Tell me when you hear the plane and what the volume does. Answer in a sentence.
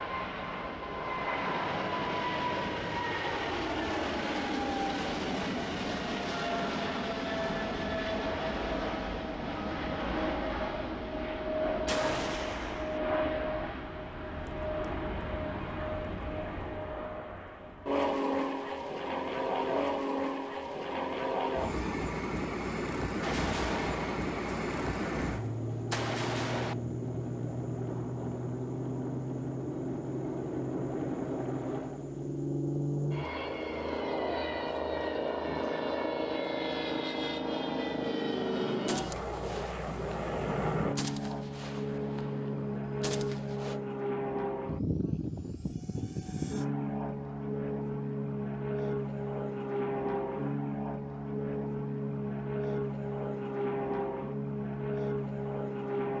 The plane can be heard from 0.0 to 56.1 s, at a steady volume.